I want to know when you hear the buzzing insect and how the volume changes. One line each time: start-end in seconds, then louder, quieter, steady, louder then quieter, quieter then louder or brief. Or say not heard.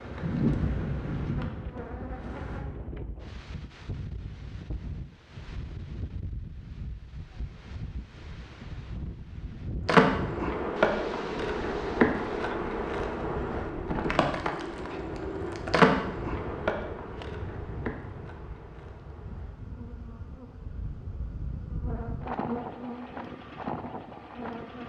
0.0-2.6 brief
9.8-24.8 quieter then louder.